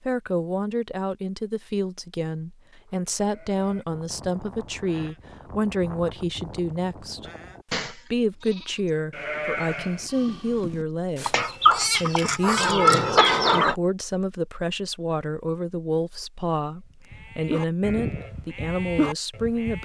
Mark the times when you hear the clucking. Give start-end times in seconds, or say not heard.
11.2-13.8.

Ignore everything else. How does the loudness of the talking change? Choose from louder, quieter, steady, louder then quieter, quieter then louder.
steady.